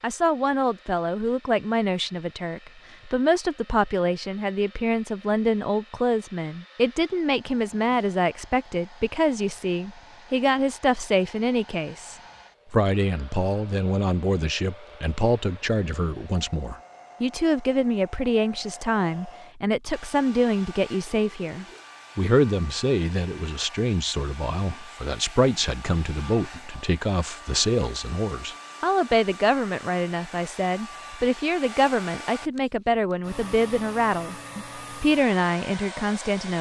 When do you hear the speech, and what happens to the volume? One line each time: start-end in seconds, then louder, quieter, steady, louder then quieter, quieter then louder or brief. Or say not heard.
0.0-36.5 steady.